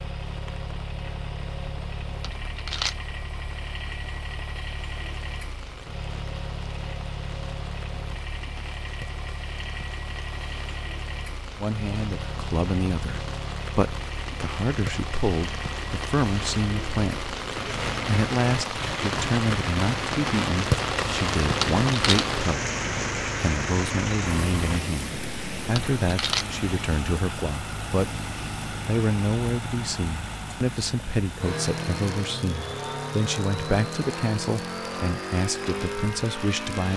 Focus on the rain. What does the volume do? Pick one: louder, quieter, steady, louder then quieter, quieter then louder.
louder then quieter.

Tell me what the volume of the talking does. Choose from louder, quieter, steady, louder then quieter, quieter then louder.
steady.